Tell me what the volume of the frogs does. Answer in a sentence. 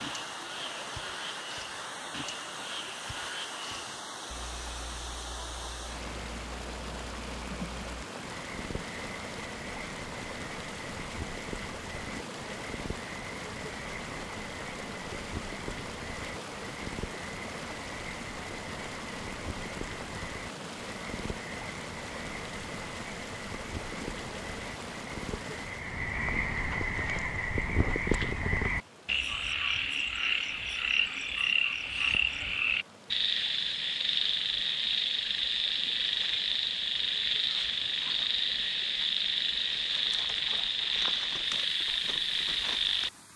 The loudness of the frogs goes up.